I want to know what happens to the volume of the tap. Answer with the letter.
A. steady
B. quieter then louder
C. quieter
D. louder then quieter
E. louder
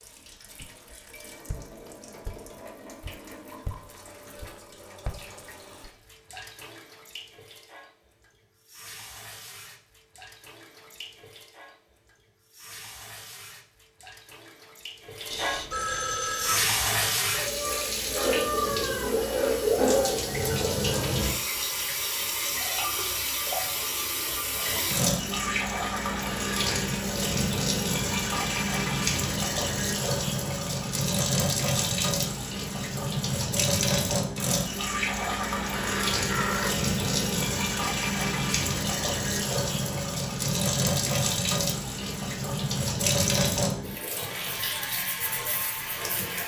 E.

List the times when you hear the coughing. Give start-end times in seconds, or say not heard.
not heard.